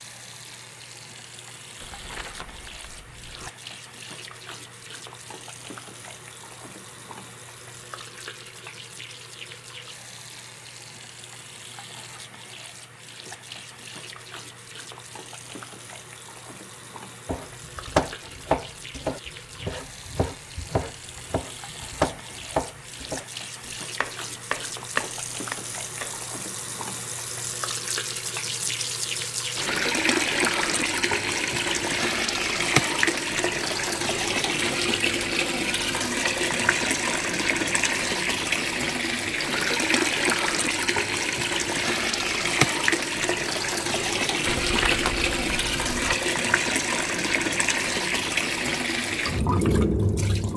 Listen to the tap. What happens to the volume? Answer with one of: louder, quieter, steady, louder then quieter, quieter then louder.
louder.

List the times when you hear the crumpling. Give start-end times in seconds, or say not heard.
1.8-3.5, 44.5-46.1.